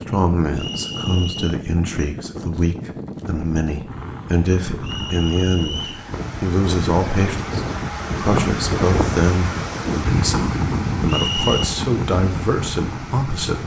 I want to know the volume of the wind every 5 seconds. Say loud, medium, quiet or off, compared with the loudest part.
medium, loud, loud.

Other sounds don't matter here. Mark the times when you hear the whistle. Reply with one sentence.
The whistle can be heard from 0.6 to 1.6 s, from 4.8 to 6.0 s and from 11.1 to 11.7 s.